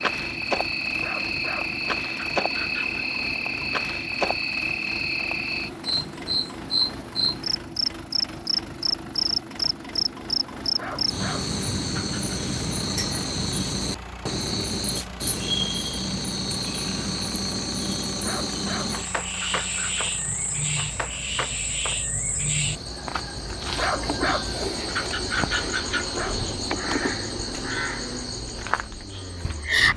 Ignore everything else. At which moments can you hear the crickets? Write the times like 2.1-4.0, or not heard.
0.0-29.9.